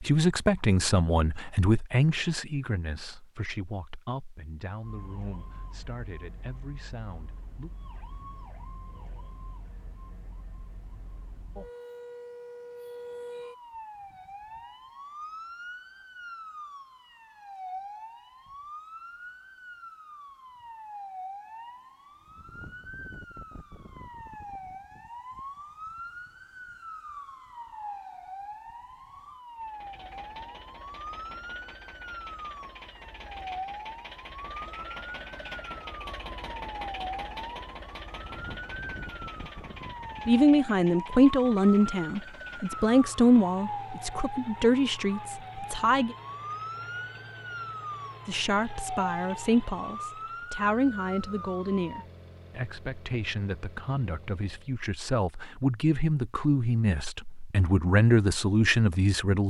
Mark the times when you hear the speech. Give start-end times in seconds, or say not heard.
0.0-7.7, 40.2-46.1, 48.2-59.4.